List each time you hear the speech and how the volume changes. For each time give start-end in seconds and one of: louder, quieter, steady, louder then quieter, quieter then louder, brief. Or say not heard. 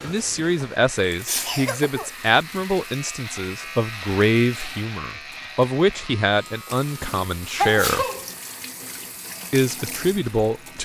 0.0-8.1 steady
9.5-10.8 brief.